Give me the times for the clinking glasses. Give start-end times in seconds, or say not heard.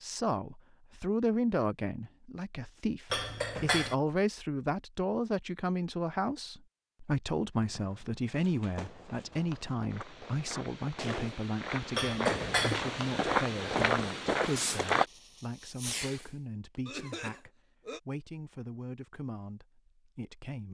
3.1-4.0, 11.9-12.8.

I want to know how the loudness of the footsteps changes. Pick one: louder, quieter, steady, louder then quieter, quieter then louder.
louder.